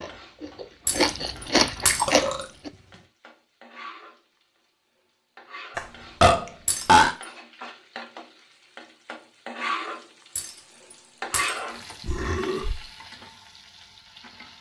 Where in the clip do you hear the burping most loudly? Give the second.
7 s.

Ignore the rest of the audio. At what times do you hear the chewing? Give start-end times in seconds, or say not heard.
0.0-2.7.